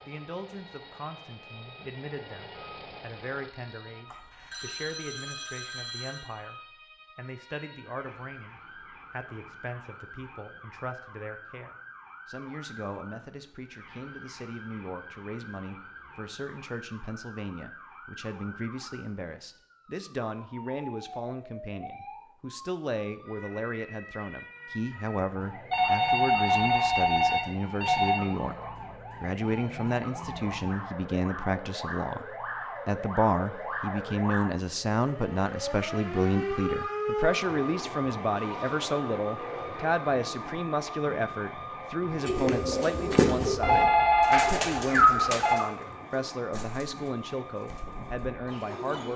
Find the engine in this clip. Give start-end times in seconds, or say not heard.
0.0-4.0.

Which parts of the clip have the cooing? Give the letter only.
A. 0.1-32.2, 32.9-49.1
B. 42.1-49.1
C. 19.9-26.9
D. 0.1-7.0
B.